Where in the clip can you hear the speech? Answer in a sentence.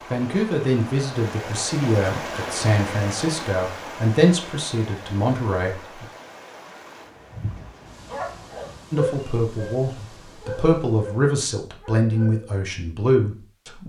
The speech can be heard from 0.1 to 6.0 s and from 8.9 to 13.8 s.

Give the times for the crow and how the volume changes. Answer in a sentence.
The crow can't be heard in this clip.